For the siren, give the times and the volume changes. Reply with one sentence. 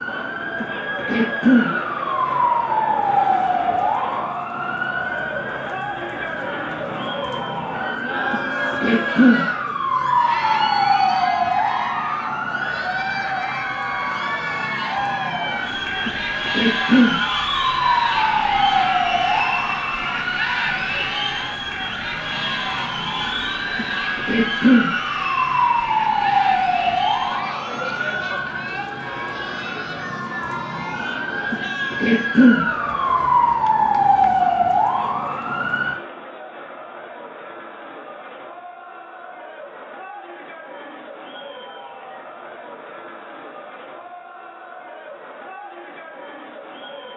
You can hear the siren from 0.0 to 36.0 s, at a steady volume.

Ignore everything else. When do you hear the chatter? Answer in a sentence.
You can hear the chatter from 0.0 to 47.1 s.